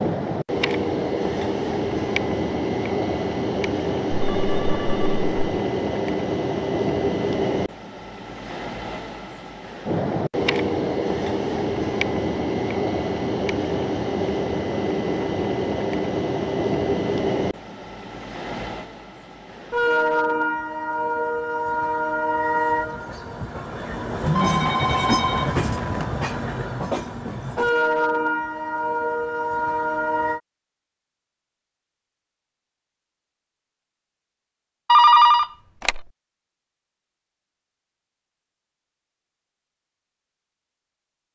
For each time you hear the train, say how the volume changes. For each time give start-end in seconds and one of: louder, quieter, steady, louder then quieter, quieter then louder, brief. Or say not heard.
0.0-30.4 steady.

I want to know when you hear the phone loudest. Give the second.
35 s.